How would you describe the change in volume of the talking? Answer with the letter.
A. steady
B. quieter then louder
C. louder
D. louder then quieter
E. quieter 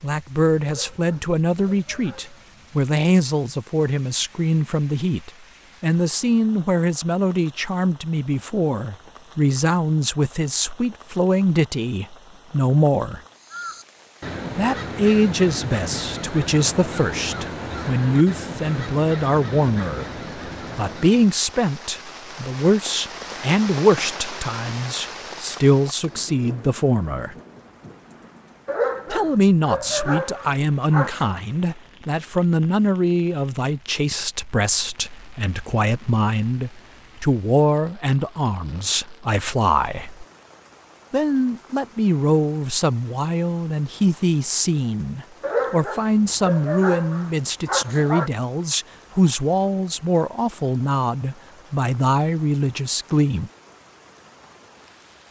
A.